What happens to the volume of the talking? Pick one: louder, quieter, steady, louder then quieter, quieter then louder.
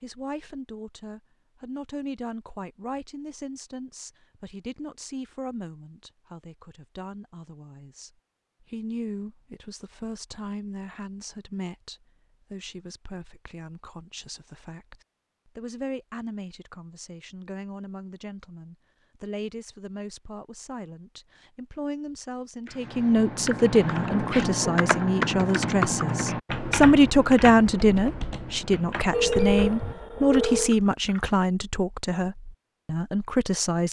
louder.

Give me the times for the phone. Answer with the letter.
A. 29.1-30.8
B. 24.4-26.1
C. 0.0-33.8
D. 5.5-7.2
A.